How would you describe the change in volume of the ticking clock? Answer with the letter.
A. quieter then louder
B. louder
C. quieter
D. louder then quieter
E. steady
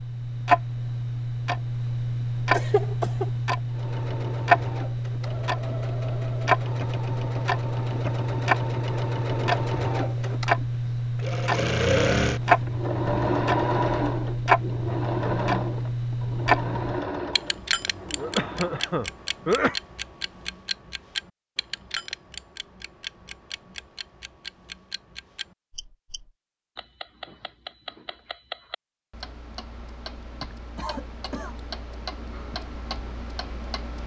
C.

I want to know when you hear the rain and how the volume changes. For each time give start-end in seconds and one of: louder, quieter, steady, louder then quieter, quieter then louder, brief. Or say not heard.
not heard.